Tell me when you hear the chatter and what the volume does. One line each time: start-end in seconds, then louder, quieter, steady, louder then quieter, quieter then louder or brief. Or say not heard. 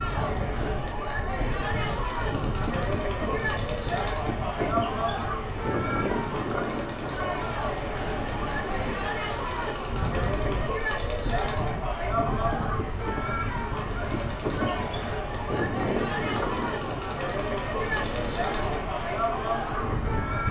0.0-20.4 steady.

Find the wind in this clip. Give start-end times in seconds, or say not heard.
0.0-20.4.